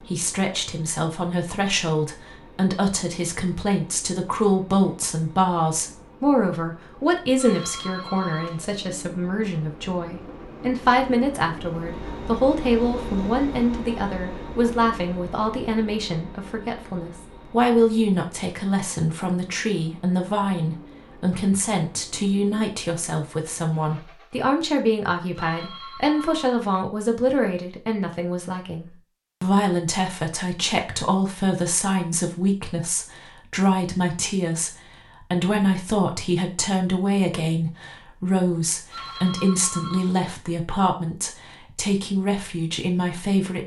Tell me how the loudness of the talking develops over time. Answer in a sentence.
The loudness of the talking stays about the same.